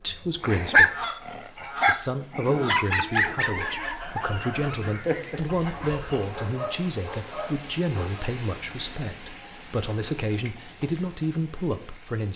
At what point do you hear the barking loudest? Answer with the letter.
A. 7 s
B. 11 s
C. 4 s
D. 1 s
D.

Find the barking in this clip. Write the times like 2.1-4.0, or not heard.
0.4-8.2.